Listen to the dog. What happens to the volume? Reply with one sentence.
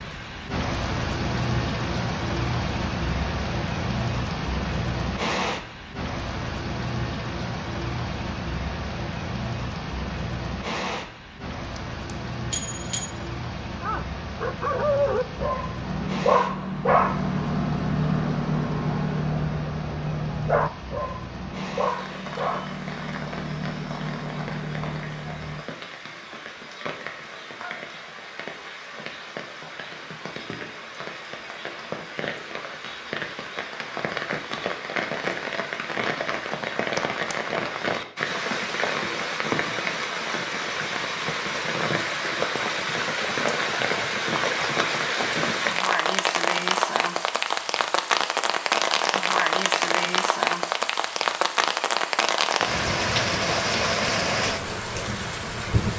The volume of the dog goes down.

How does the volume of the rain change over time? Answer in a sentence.
The loudness of the rain goes down, then up.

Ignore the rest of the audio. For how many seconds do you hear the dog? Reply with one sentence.
The dog can be heard for 12 seconds in total.